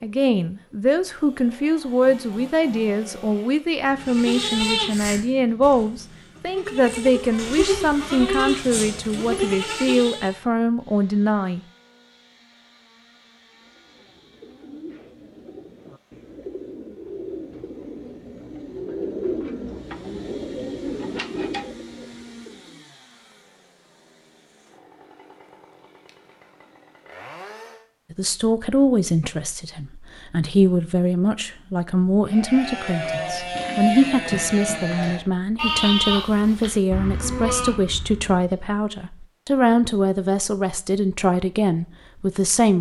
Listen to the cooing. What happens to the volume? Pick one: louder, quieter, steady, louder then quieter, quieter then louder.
louder.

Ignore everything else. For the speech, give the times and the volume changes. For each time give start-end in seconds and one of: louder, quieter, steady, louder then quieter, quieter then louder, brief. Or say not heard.
0.0-11.6 steady
28.1-42.7 steady.